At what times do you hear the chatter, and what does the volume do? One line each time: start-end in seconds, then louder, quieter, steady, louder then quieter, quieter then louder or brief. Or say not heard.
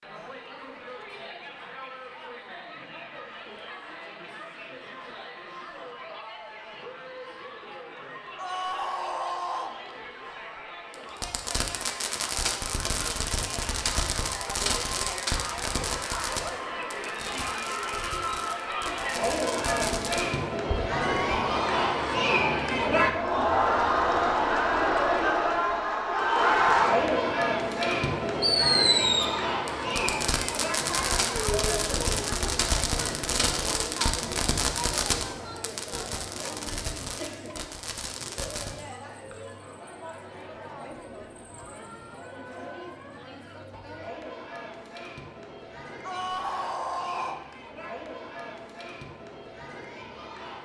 0.0-50.6 louder then quieter.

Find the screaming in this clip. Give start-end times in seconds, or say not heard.
8.3-9.8, 20.9-21.8, 46.0-47.4.